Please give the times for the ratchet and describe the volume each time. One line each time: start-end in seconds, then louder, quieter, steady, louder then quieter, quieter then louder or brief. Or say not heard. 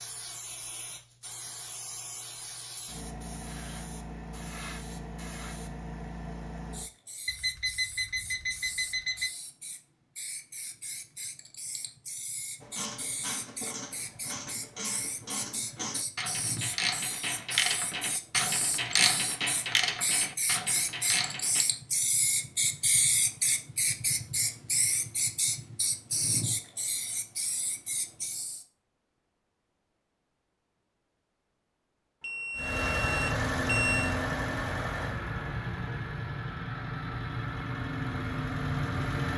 12.6-21.6 louder.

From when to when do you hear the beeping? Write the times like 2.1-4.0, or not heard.
7.2-9.3, 32.2-34.1.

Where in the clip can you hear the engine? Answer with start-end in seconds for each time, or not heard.
32.5-39.3.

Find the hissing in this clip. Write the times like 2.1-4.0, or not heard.
0.0-28.6.